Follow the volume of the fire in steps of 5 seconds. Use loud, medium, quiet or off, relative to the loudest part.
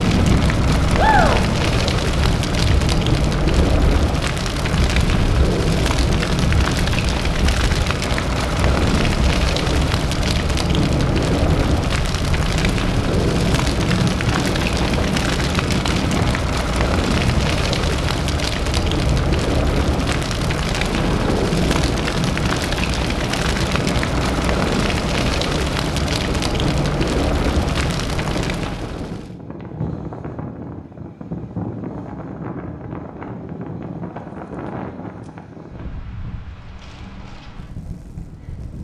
loud, loud, loud, loud, loud, loud, off, off.